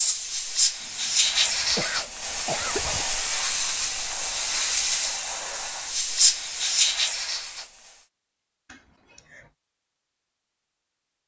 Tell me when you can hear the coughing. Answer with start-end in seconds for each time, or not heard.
0.8-3.0, 8.7-9.4.